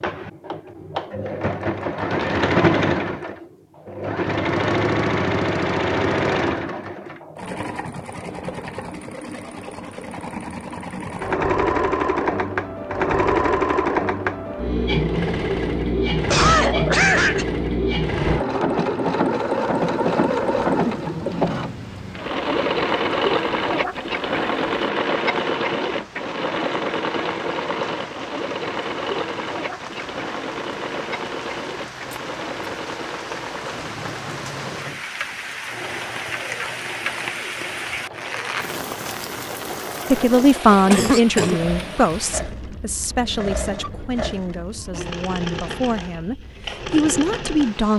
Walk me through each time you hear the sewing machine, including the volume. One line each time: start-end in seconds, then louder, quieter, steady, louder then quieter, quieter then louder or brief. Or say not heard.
0.0-47.9 quieter.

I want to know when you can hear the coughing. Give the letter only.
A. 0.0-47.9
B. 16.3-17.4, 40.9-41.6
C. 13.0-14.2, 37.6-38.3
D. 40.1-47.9
B.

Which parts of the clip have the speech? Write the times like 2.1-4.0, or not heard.
40.1-47.9.